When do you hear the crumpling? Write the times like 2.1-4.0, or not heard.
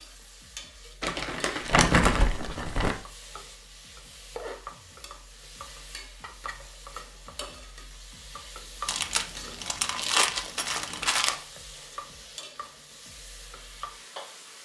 1.0-3.0, 8.8-11.3.